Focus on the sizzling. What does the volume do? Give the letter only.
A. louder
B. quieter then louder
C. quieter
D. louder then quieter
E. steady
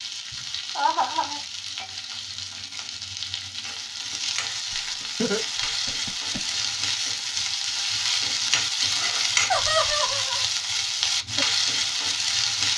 A.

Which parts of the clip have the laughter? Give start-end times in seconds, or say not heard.
0.8-1.4, 4.7-6.6, 9.5-10.4.